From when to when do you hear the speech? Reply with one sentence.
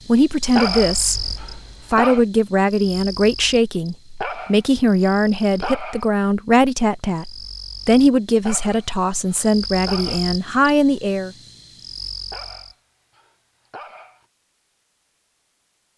You can hear the speech from 0.1 to 1.2 s and from 1.9 to 11.3 s.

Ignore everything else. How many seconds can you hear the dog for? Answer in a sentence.
You can hear the dog for 7 seconds altogether.